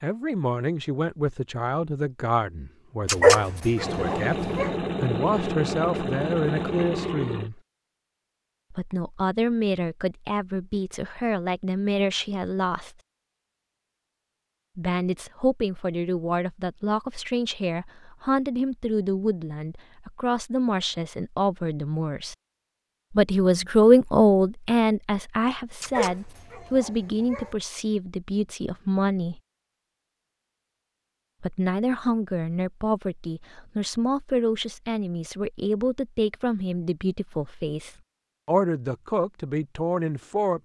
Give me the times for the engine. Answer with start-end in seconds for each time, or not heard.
3.8-7.5.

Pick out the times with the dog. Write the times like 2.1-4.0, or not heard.
3.0-4.7, 25.8-27.6.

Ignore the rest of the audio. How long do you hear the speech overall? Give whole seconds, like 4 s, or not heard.
35 s.